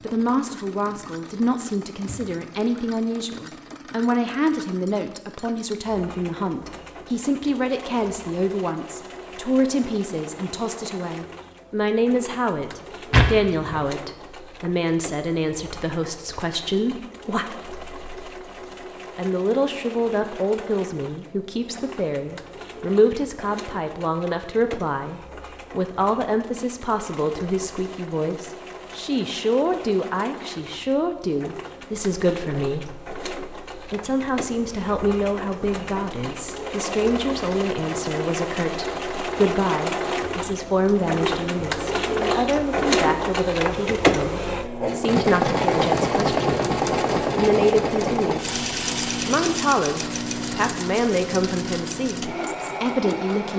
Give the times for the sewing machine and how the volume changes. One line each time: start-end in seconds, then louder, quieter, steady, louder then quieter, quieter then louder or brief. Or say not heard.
0.0-53.5 louder.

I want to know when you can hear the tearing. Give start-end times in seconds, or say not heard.
13.1-13.8.